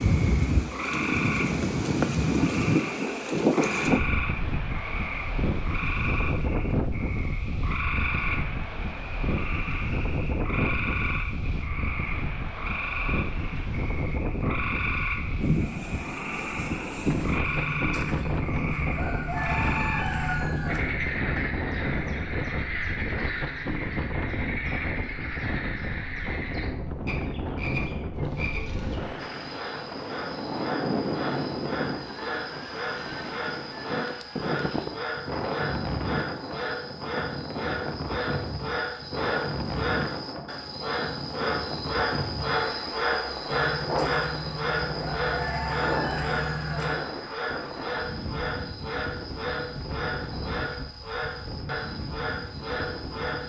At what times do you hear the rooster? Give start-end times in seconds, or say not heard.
17.4-20.8, 43.5-47.0.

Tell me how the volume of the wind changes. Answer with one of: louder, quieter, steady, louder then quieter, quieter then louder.
quieter.